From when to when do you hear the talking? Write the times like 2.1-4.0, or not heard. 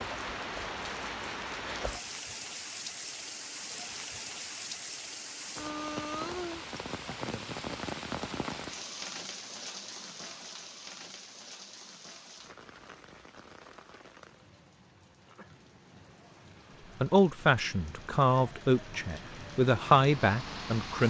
17.0-21.0.